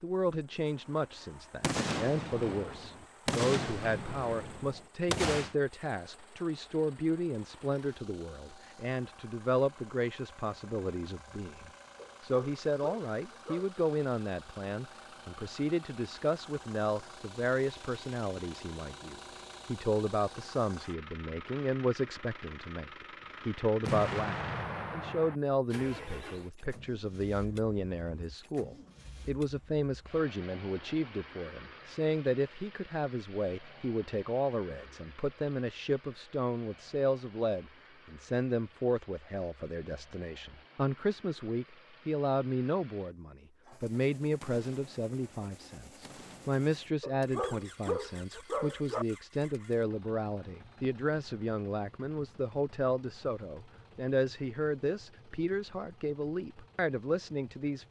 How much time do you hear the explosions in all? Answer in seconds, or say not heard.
8 s.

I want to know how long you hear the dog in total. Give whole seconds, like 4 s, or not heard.
4 s.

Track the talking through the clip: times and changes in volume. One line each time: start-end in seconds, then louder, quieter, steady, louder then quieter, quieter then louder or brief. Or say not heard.
0.0-57.8 steady.